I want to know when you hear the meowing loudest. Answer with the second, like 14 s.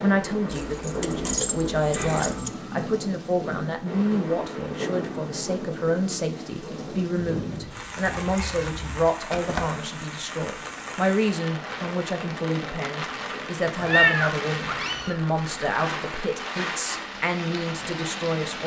14 s.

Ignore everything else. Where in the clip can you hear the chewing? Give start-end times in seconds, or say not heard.
not heard.